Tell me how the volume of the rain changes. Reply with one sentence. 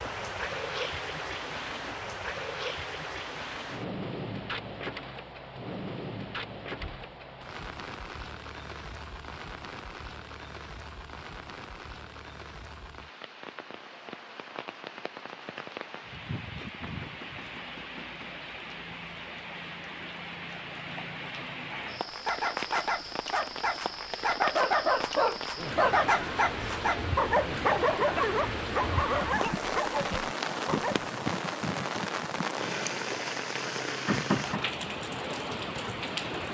The volume of the rain goes down, then up.